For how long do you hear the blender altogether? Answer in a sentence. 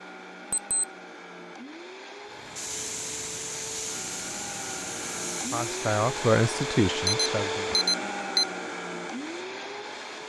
You can hear the blender for 10 seconds altogether.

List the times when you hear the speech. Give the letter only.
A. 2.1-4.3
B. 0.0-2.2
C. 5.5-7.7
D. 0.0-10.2
C.